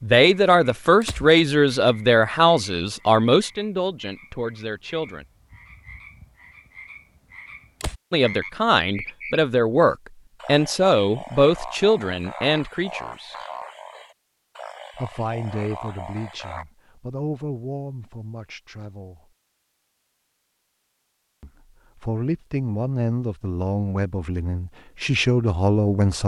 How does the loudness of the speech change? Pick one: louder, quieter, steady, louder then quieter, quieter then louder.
quieter then louder.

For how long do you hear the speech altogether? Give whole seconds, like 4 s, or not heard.
20 s.